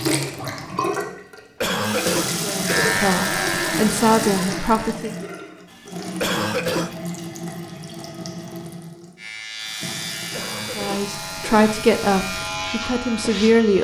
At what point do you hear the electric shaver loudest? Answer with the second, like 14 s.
3 s.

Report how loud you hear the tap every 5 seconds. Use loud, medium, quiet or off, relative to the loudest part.
loud, medium, medium.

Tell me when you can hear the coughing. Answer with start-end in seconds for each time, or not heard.
1.6-3.0, 6.2-7.0, 10.3-11.7.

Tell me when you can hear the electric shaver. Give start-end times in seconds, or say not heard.
2.6-5.0, 9.2-13.7.